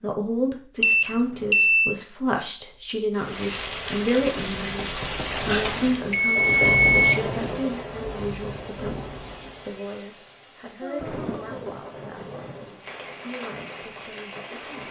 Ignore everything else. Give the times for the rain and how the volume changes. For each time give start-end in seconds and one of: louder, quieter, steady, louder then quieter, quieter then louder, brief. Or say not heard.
3.1-14.8 quieter.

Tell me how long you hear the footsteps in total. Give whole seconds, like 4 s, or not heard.
not heard.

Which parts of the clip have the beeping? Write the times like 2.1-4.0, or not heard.
0.8-1.9, 5.6-7.2, 10.8-11.6.